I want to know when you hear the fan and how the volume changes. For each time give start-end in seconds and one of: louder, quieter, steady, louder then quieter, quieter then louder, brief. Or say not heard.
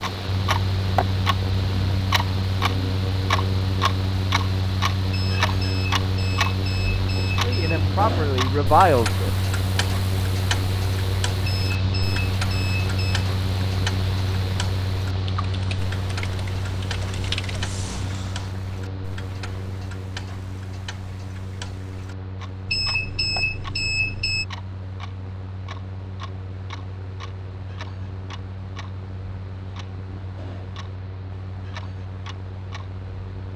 0.0-33.5 quieter.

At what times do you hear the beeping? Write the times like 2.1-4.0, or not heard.
5.1-7.8, 11.4-13.2, 22.6-24.4.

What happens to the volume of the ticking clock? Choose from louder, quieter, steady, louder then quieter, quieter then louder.
quieter.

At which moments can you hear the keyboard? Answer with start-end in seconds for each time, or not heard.
15.4-18.5.